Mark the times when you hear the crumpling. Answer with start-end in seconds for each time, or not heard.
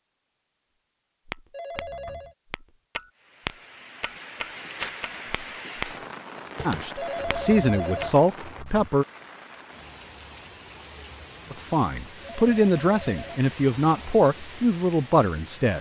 4.7-5.2.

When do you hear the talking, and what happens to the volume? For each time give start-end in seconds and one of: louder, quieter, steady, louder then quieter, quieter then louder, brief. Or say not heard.
6.7-9.1 brief
11.5-15.7 steady.